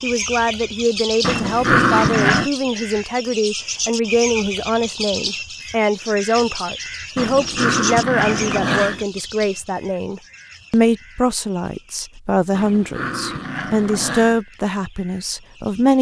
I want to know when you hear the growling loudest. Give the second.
2 s.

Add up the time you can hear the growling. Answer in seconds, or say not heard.
5 s.